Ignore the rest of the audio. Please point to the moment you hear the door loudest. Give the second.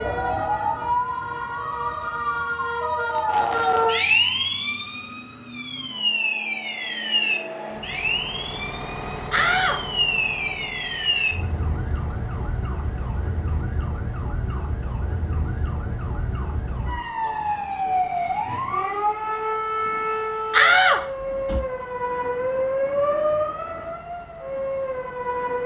21 s.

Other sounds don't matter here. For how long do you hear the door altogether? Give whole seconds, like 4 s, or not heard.
2 s.